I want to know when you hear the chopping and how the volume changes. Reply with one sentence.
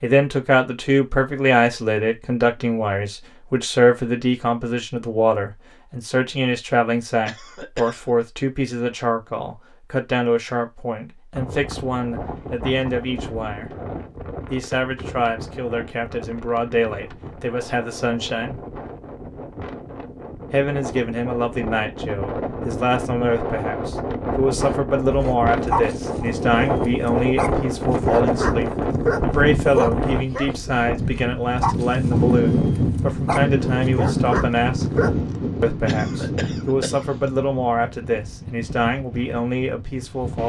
You can't hear the chopping here.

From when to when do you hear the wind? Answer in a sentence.
The wind can be heard from 11.3 to 40.4 s.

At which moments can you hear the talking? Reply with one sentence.
You can hear the talking from 0.0 to 13.7 s, from 14.5 to 18.6 s, from 20.5 to 34.9 s and from 35.6 to 40.4 s.